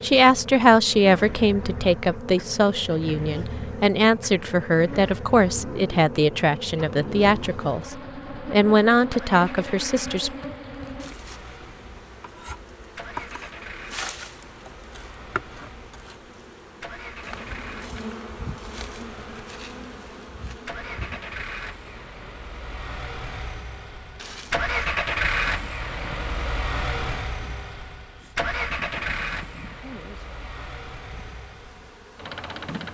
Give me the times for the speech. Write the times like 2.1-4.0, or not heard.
0.0-10.3.